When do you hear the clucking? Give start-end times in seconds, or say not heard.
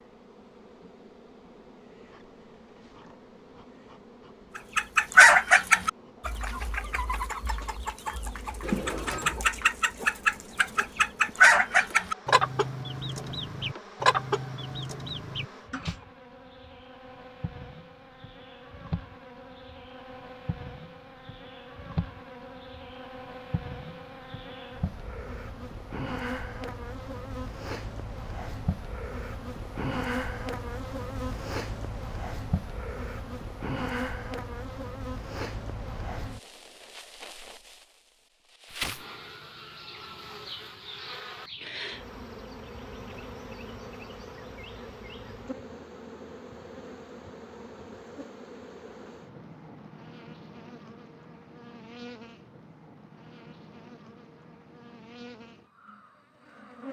4.5-15.9.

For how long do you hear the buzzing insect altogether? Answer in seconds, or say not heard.
57 s.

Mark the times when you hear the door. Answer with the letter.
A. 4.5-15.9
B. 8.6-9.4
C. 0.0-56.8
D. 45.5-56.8
B.